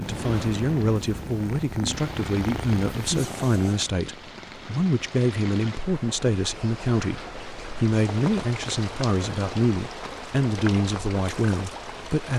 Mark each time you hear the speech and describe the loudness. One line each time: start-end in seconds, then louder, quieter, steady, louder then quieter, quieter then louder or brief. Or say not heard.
0.0-12.3 steady.